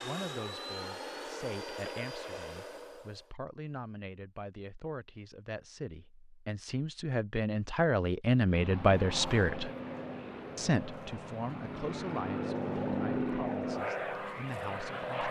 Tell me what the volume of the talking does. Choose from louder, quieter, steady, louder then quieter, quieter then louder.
louder then quieter.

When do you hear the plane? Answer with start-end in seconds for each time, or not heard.
0.0-3.3, 8.4-15.2.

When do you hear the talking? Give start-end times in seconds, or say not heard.
0.0-9.7, 10.6-15.2.